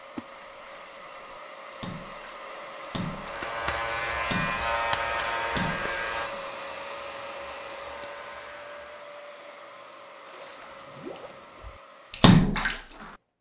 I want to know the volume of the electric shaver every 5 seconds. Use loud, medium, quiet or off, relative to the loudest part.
loud, medium, off.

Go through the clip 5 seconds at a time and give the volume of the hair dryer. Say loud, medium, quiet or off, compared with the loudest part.
loud, loud, medium.